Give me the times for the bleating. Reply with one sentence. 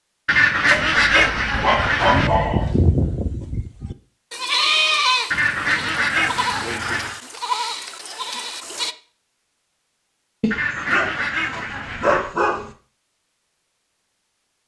The bleating can be heard from 1.8 to 8.9 s.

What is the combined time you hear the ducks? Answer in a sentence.
The ducks can be heard for 6 seconds in total.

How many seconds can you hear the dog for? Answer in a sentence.
The dog can be heard for 5 seconds in total.